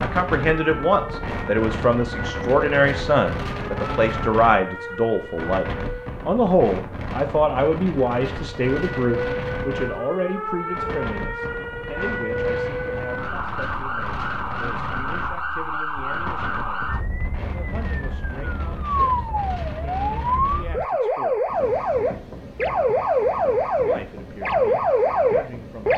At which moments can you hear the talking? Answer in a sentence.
You can hear the talking from 0.0 to 21.4 s and from 23.8 to 25.9 s.